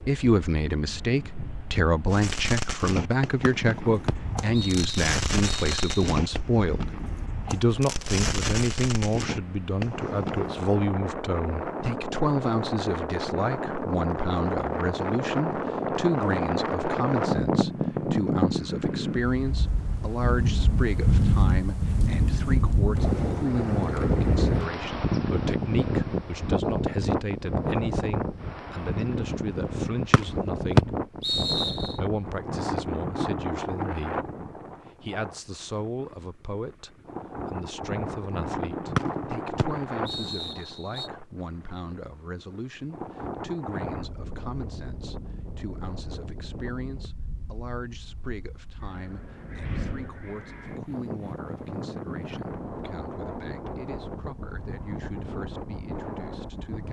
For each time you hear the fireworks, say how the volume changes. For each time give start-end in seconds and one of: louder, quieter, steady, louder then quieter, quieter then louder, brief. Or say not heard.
2.1-10.7 steady.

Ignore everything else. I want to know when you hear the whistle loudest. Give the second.
31 s.